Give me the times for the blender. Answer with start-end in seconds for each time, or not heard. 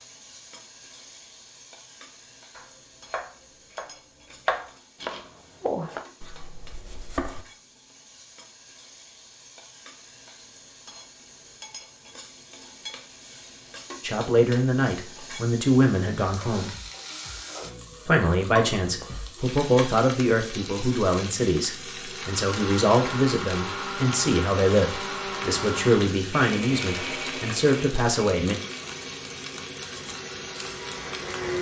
22.1-31.5.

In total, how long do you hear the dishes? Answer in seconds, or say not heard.
not heard.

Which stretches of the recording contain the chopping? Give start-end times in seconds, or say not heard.
2.5-7.4.